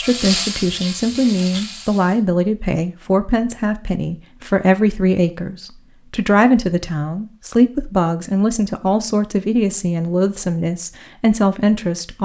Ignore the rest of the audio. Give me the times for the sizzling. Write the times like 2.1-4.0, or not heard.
0.0-2.2.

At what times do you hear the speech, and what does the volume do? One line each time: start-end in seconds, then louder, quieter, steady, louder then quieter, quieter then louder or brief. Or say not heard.
0.0-12.1 steady.